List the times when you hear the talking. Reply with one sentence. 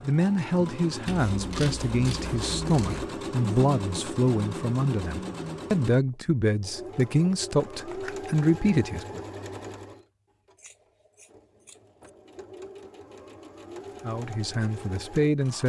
The talking can be heard from 0.0 to 9.2 s and from 14.0 to 15.6 s.